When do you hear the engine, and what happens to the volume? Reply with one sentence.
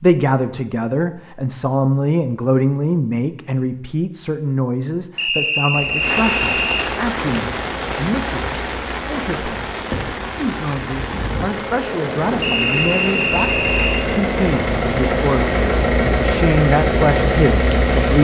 You can hear the engine from 5.7 to 18.1 s, getting louder.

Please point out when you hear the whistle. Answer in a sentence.
The whistle can be heard from 5.2 to 6.8 s and from 12.4 to 14.1 s.